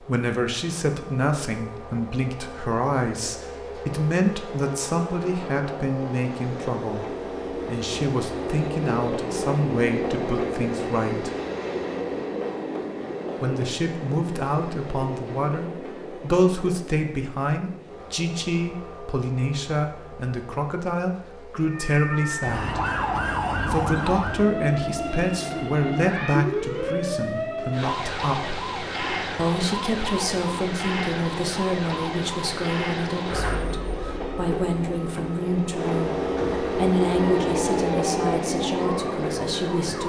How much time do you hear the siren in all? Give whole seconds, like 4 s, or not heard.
18 s.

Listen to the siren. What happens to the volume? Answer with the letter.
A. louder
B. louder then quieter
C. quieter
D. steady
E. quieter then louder
C.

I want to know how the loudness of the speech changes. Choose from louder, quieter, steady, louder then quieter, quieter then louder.
steady.